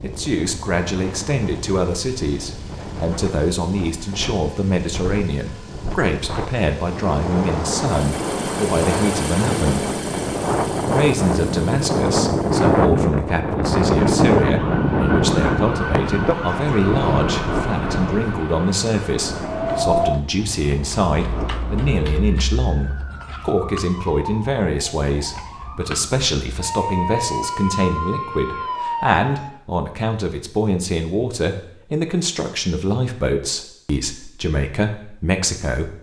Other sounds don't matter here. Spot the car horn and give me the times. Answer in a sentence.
The car horn can't be heard in this clip.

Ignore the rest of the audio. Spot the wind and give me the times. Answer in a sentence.
The wind can be heard from 0.0 to 22.4 s.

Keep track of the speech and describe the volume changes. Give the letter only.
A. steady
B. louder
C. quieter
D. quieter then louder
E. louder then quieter
A.